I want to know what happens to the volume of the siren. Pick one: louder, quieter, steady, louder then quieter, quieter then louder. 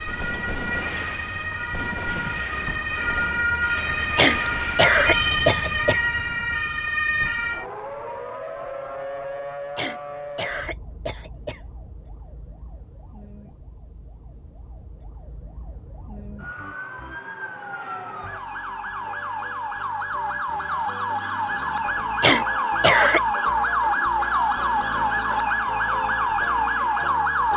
quieter then louder.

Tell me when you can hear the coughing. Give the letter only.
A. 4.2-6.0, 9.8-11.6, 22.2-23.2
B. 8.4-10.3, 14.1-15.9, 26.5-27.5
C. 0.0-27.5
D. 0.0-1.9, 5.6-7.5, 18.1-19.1
A.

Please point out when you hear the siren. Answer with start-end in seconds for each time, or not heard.
0.0-27.5.